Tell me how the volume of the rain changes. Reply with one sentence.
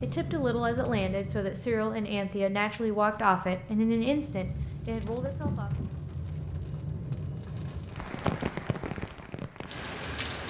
The volume of the rain goes down, then up.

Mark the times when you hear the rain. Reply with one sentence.
You can hear the rain from 0.0 to 10.4 s.